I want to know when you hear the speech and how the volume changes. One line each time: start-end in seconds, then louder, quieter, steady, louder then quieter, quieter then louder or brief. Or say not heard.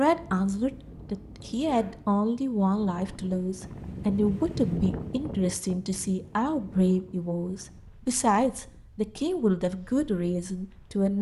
0.0-11.1 steady.